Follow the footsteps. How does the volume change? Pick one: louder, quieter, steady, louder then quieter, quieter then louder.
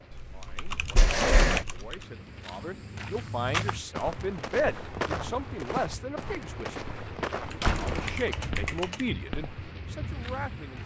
quieter.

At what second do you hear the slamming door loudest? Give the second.
1 s.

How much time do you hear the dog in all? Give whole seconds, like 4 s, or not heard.
not heard.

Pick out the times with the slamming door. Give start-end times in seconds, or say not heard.
0.9-1.6, 7.6-8.6.